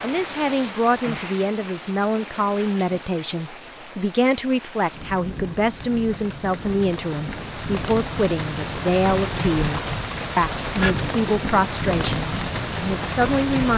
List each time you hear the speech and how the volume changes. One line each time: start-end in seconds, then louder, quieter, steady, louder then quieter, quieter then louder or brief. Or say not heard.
0.0-13.7 steady.